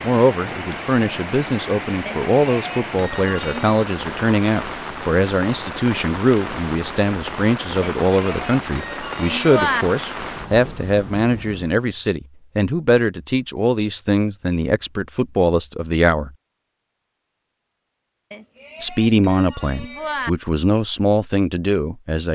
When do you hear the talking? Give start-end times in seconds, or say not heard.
0.0-16.3, 18.8-22.3.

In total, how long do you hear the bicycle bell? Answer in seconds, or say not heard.
6 s.